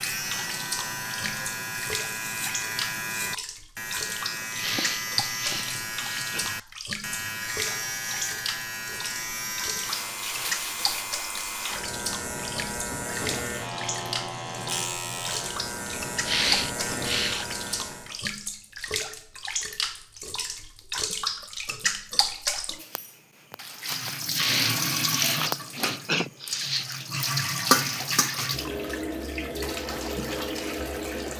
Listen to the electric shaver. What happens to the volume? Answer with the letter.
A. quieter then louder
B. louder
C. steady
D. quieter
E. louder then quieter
C.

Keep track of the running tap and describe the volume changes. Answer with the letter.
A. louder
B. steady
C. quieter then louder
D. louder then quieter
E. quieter
A.